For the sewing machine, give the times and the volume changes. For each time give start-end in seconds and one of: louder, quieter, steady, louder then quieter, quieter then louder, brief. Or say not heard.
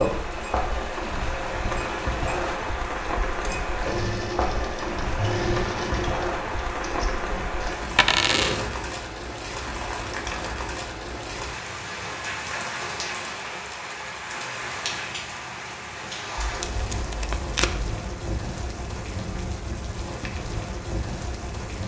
0.0-8.7 louder then quieter.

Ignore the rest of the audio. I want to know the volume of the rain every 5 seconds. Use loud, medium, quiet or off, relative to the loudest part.
loud, loud, loud, medium, medium.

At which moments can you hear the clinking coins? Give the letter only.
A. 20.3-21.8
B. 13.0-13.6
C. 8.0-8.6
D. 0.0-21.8
C.